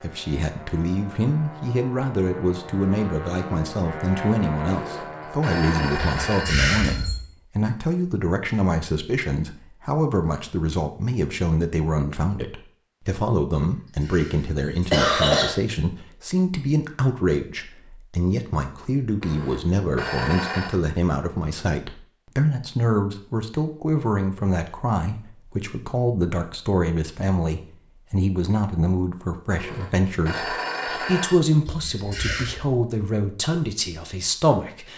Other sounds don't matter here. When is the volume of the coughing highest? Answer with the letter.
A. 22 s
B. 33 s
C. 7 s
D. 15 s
D.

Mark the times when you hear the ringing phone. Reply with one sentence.
The ringing phone can be heard from 4.7 to 6.5 s, from 19.2 to 20.8 s and from 29.4 to 31.4 s.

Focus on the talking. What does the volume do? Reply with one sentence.
The loudness of the talking stays about the same.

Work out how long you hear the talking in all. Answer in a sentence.
You can hear the talking for 35 seconds altogether.